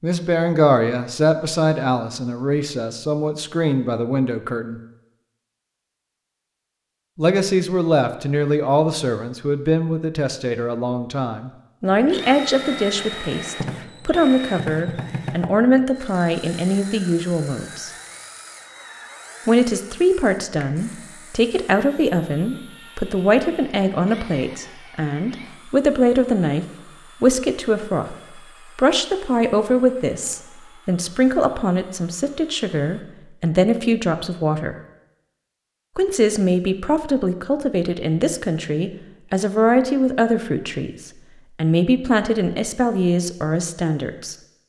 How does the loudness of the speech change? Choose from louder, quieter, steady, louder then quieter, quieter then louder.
steady.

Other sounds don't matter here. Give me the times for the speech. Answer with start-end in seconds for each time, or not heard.
0.0-4.8, 7.2-17.9, 19.4-34.8, 36.0-44.4.